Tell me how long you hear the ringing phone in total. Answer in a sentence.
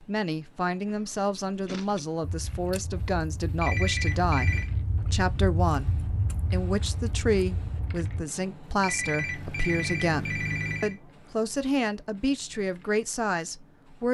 You can hear the ringing phone for 3 seconds altogether.